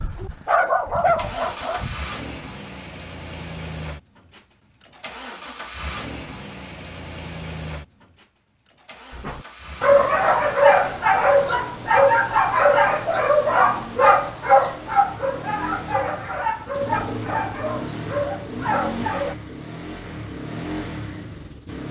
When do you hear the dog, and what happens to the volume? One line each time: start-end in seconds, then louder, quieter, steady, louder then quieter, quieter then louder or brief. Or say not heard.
0.0-1.9 brief
9.2-19.4 quieter.